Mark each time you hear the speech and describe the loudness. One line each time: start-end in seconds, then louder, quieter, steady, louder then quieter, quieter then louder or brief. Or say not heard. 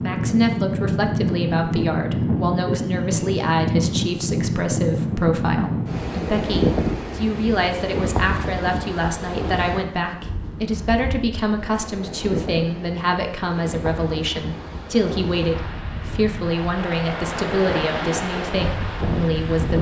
0.0-19.7 steady.